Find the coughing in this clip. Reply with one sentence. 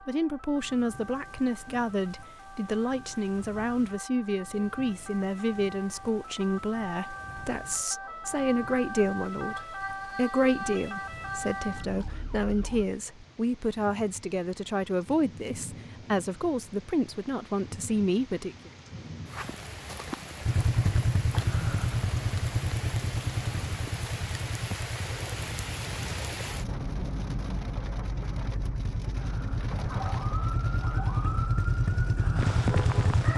The coughing can't be heard in this clip.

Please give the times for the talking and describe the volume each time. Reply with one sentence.
The talking can be heard from 0.1 to 18.7 s, at a steady volume.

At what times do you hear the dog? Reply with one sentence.
The dog can't be heard in this clip.